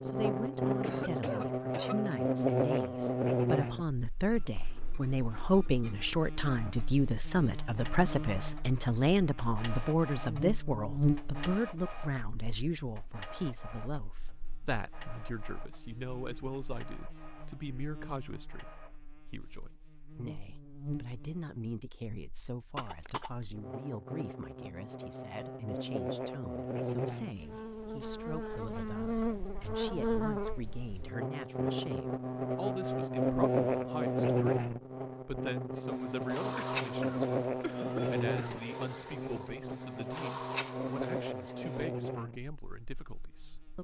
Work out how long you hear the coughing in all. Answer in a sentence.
The coughing can be heard for 4 seconds in total.